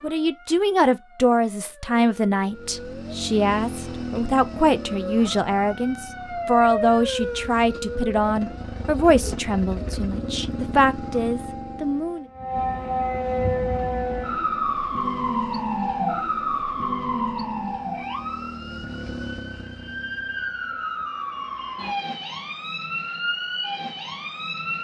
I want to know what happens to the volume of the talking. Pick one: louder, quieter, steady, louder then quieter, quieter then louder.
steady.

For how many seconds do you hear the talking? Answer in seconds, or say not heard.
12 s.